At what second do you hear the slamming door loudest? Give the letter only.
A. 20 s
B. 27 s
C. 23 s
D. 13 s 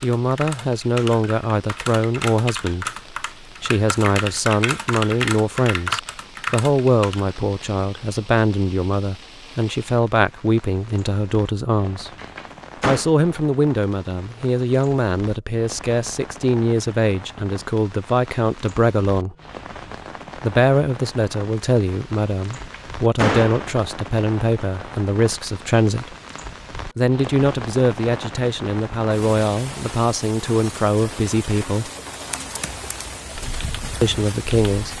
C.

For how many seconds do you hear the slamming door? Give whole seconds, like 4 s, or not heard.
2 s.